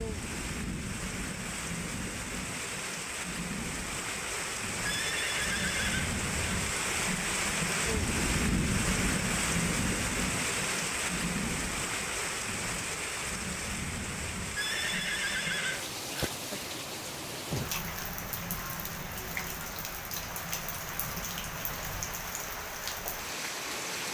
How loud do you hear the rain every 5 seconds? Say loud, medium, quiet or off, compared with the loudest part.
medium, loud, loud, medium, medium.